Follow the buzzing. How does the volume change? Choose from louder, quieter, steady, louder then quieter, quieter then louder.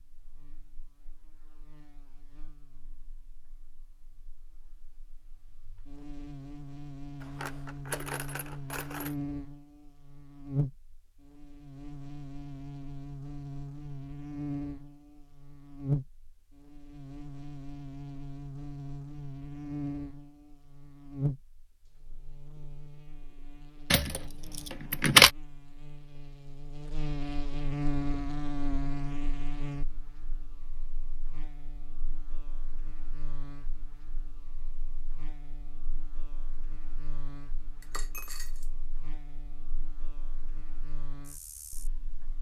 louder then quieter.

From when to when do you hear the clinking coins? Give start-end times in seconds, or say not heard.
7.2-9.2, 23.9-25.3, 37.8-38.7.